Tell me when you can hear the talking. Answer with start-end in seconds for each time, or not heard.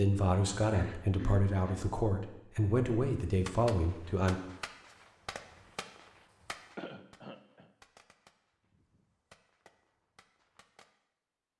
0.0-4.4.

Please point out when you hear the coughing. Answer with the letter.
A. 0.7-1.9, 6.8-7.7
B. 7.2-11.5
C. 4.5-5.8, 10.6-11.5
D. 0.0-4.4
A.